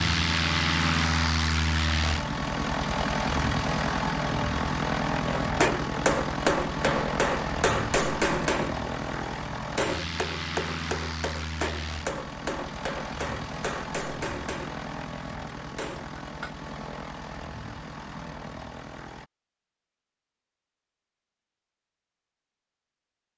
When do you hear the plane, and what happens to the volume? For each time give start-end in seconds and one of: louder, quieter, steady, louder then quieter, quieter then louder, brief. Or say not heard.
0.0-19.3 quieter.